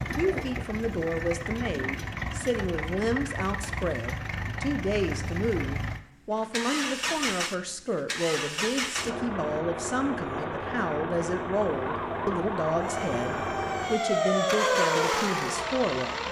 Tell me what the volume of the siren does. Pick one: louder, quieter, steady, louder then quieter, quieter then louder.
louder then quieter.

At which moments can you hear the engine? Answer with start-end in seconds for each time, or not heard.
0.0-16.2.